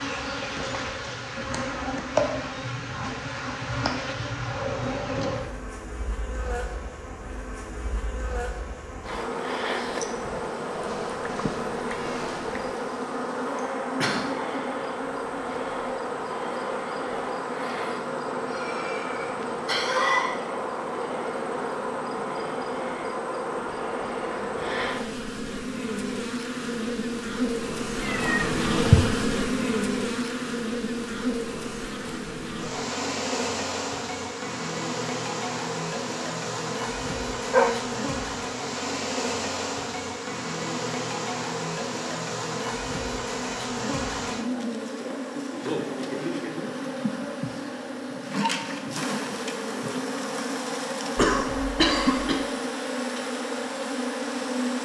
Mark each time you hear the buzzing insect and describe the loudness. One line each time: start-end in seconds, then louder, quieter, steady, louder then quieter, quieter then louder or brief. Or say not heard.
0.0-54.7 steady.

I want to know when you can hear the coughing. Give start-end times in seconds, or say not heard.
13.6-14.2, 18.4-20.3, 51.1-52.4.